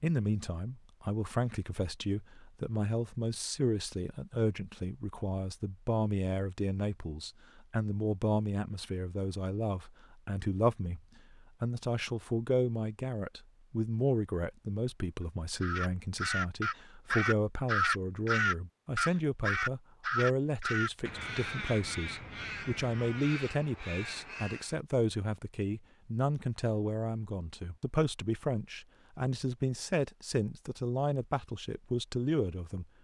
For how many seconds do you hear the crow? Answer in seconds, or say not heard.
9 s.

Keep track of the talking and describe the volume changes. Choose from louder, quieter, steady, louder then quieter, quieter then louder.
steady.